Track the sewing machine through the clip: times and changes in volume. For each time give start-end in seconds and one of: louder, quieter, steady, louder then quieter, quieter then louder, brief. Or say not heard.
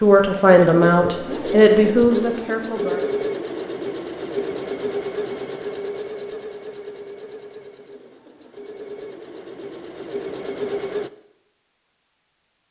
0.0-11.1 quieter then louder.